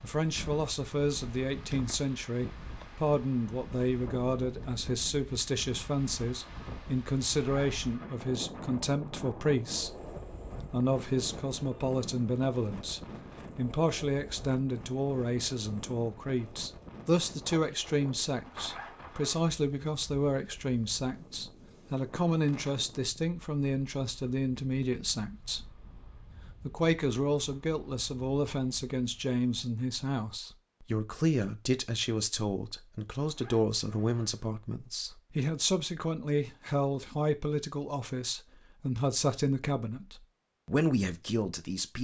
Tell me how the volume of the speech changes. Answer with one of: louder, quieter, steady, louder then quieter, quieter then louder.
steady.